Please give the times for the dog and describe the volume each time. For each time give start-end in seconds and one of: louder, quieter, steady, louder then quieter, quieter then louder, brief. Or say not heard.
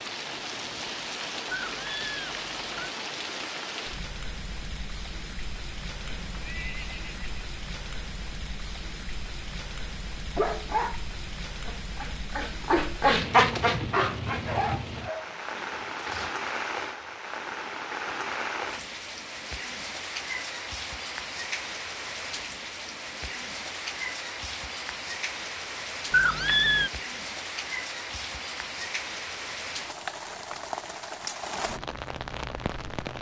10.3-16.3 louder then quieter.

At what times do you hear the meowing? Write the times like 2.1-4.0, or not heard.
1.5-3.0, 26.1-26.9.